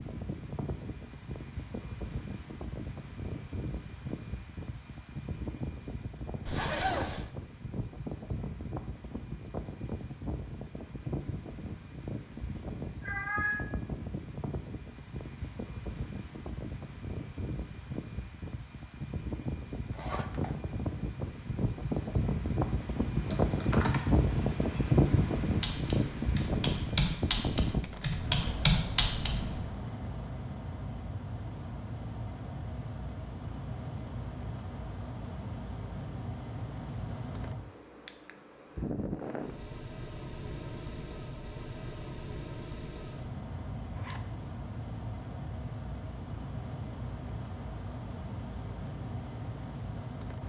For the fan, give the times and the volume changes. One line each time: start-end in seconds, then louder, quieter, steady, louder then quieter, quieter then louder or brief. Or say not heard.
0.0-50.4 louder then quieter.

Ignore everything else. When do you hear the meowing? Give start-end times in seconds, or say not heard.
13.0-13.7.